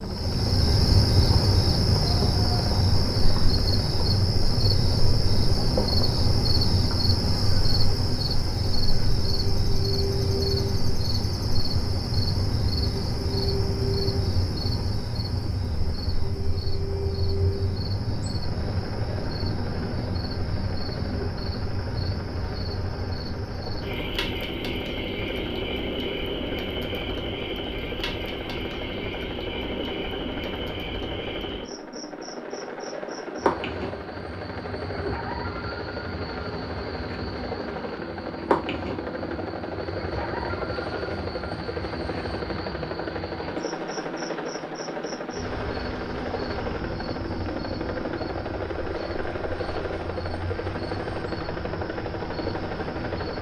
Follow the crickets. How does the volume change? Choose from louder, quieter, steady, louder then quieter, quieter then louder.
quieter.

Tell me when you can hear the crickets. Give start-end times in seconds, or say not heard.
0.0-53.3.